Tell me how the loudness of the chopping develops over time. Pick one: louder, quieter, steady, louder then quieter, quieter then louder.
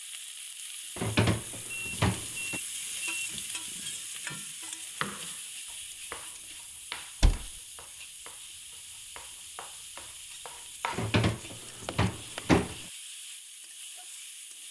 quieter then louder.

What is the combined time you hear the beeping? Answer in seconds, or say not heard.
2 s.